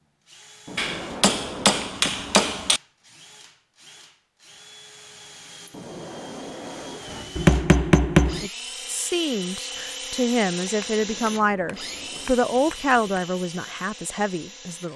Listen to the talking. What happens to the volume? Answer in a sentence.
The loudness of the talking goes up, then down.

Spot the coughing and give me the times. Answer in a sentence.
You can't hear the coughing here.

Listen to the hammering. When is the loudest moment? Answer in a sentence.
The loudest moment of the hammering is at 8 seconds.